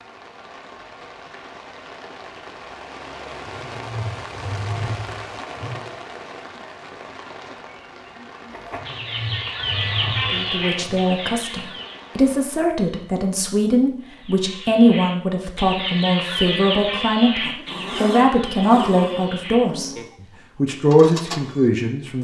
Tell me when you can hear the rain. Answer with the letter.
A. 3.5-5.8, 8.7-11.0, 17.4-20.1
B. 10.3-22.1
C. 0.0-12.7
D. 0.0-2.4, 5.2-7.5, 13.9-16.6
C.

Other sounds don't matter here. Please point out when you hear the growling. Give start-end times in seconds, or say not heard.
3.5-5.8, 8.7-11.0, 17.4-20.1.